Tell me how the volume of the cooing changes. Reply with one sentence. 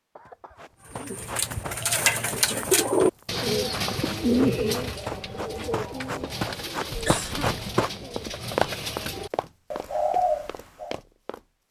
The volume of the cooing goes down, then up.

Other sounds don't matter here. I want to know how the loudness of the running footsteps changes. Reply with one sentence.
The volume of the running footsteps goes up, then down.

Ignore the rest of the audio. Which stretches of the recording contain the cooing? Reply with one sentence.
The cooing can be heard from 0.9 to 10.9 s.